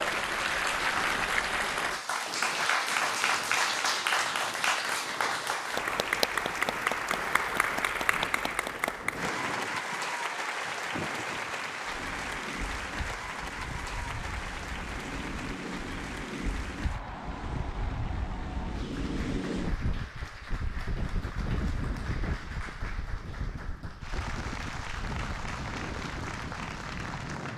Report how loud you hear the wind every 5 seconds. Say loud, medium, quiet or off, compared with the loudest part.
medium, medium, medium, loud, loud, loud.